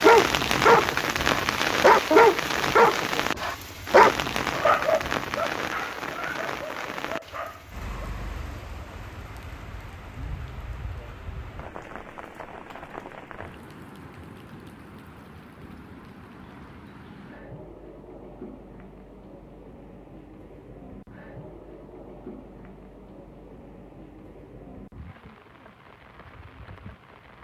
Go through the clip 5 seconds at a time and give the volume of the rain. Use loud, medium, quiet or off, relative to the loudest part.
loud, medium, quiet, quiet, quiet, quiet.